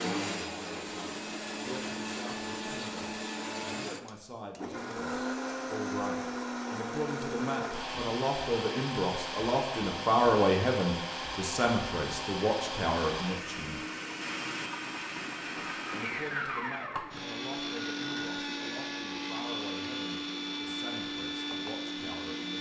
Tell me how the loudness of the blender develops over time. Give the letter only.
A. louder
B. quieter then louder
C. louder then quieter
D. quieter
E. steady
E.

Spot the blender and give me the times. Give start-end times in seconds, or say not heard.
0.0-22.5.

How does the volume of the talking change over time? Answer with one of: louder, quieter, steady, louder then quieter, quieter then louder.
louder then quieter.